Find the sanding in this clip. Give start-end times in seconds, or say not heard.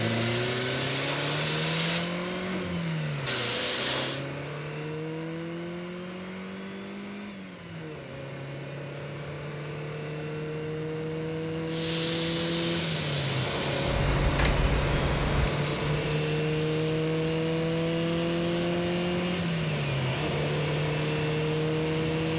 not heard.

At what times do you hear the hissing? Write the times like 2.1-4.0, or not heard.
0.0-4.2, 11.7-18.9.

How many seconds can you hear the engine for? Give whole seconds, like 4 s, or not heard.
22 s.